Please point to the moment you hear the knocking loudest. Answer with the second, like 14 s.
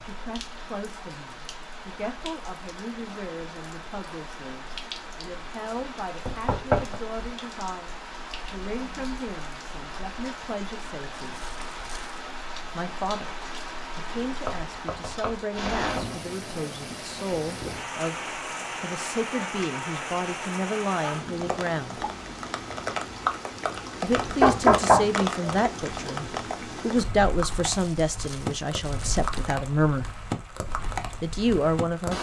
25 s.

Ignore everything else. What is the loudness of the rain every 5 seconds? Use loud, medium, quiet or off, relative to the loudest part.
medium, medium, medium, loud, loud, loud, loud.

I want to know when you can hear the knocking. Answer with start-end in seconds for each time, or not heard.
6.2-7.0, 14.4-16.1, 24.4-25.6.